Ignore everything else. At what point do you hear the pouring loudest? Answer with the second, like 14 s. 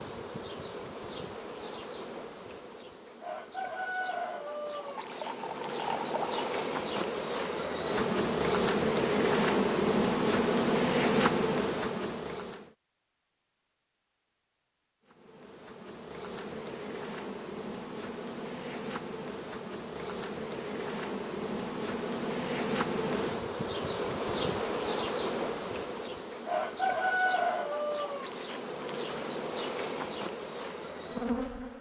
6 s.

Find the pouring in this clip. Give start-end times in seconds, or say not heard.
4.8-6.5.